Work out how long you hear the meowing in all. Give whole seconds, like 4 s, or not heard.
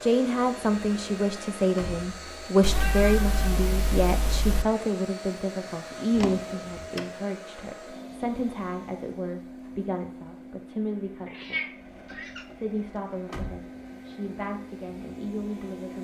3 s.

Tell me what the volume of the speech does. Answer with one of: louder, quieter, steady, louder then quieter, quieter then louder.
quieter.